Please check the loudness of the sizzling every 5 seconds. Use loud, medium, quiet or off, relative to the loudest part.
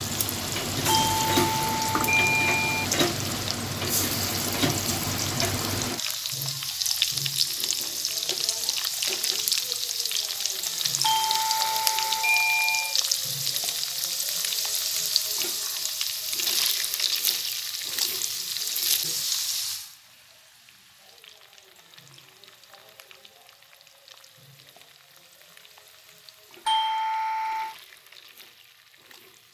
loud, loud, loud, loud, quiet, quiet.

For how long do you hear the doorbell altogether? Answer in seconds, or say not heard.
5 s.